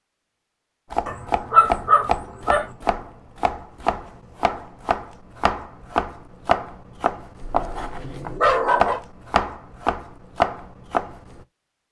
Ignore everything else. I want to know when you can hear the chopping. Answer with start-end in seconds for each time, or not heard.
0.9-11.4.